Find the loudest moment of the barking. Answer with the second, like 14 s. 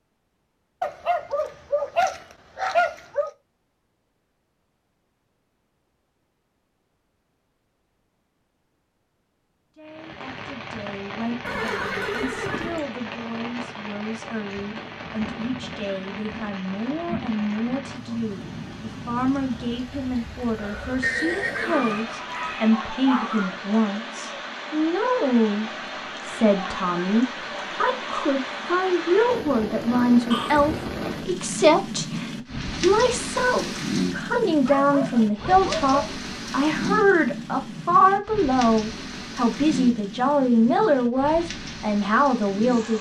3 s.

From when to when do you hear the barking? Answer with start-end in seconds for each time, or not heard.
0.8-3.3, 21.6-23.6, 34.6-36.0.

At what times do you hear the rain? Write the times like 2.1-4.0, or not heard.
9.8-42.9.